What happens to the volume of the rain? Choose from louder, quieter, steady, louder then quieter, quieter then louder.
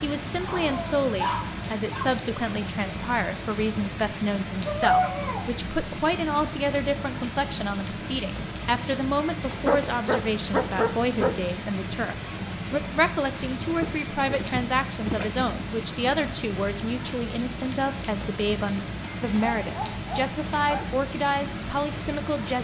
steady.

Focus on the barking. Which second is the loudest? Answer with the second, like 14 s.
5 s.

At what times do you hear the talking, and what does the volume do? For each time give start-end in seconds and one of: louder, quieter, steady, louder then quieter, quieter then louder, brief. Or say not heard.
0.0-22.6 steady.